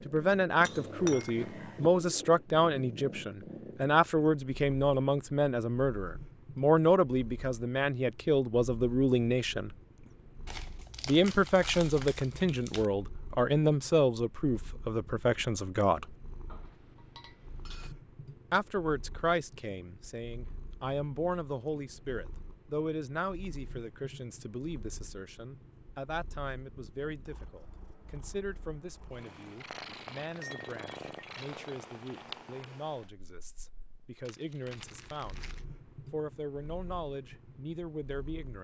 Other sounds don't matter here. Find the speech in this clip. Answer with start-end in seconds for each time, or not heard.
0.1-9.8, 11.1-16.1, 18.5-35.5, 36.1-38.5.